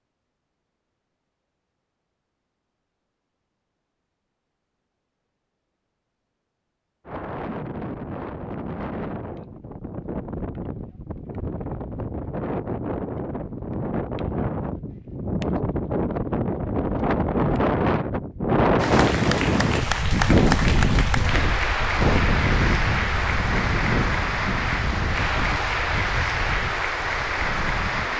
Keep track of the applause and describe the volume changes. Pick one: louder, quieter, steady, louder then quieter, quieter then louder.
steady.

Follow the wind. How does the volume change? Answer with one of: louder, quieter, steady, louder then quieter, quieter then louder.
louder then quieter.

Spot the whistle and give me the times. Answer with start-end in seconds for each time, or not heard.
not heard.